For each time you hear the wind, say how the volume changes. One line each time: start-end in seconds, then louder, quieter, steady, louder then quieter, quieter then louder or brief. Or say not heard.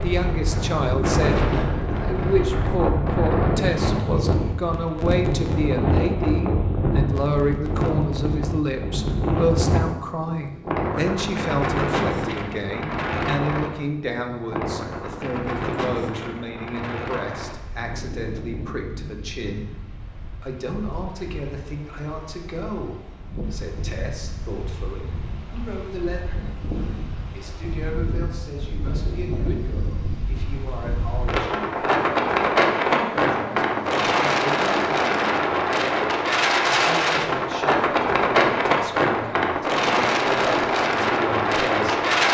0.0-42.3 quieter then louder.